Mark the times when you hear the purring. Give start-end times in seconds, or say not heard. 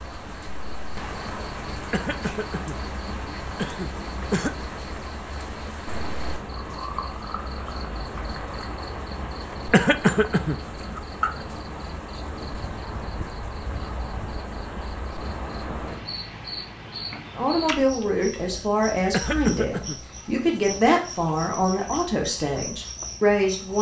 not heard.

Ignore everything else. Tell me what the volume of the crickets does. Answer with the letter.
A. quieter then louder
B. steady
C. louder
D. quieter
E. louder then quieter
B.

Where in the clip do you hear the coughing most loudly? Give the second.
10 s.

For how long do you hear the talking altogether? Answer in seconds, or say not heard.
6 s.